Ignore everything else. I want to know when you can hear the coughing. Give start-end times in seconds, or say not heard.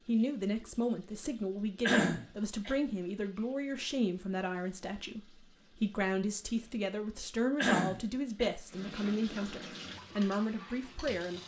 1.8-2.7, 7.5-8.5.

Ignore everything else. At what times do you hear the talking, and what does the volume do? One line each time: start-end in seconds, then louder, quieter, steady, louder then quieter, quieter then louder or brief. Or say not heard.
0.1-11.4 steady.